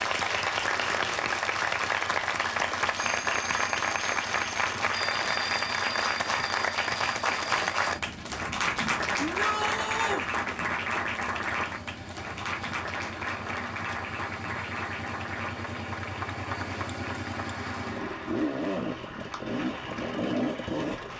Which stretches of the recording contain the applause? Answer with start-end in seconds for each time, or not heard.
0.0-21.1.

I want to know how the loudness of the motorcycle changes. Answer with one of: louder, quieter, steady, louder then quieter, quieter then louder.
louder.